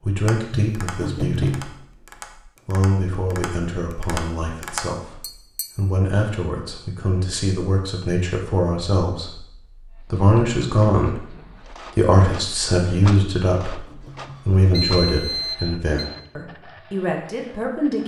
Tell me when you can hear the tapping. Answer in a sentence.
The tapping can be heard from 0.2 to 5.7 s.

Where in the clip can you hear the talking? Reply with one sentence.
The talking can be heard from 0.0 to 1.8 s, from 2.5 to 11.3 s and from 11.9 to 18.0 s.